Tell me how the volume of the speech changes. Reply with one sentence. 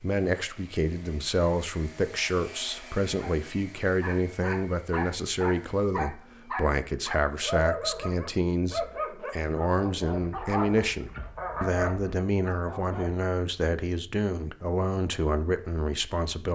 The volume of the speech stays about the same.